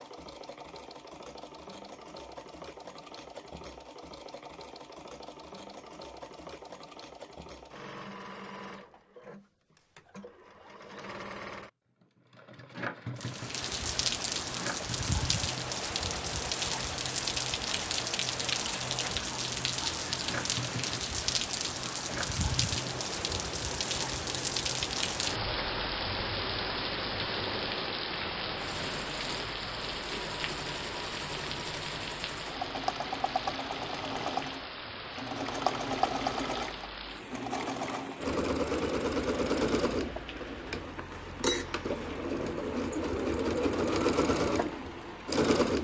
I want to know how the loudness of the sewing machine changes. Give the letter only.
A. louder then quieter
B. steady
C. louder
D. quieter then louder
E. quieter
C.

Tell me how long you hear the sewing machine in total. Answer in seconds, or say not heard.
46 s.